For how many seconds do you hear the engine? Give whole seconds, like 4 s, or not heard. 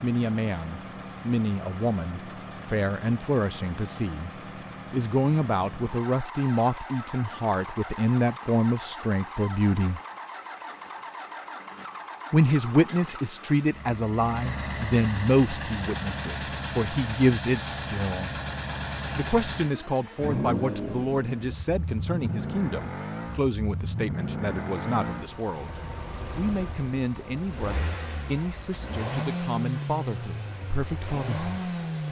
32 s.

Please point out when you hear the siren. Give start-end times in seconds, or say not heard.
not heard.